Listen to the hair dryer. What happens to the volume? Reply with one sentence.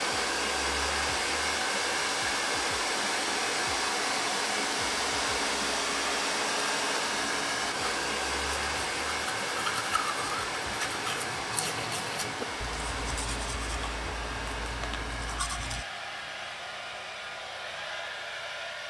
The volume of the hair dryer goes down.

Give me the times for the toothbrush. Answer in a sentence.
You can hear the toothbrush from 6.6 to 15.8 s.